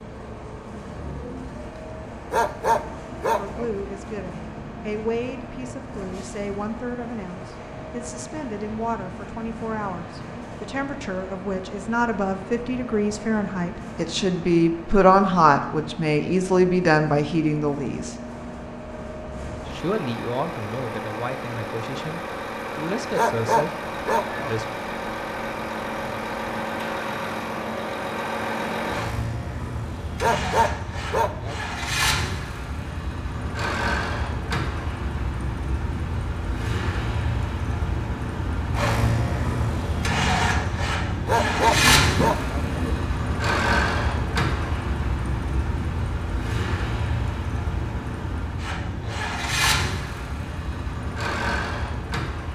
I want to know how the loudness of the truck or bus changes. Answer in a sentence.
The volume of the truck or bus goes up.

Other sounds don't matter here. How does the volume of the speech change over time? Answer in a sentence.
The volume of the speech goes up, then down.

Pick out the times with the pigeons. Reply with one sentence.
The pigeons can be heard from 41.5 to 43.0 s.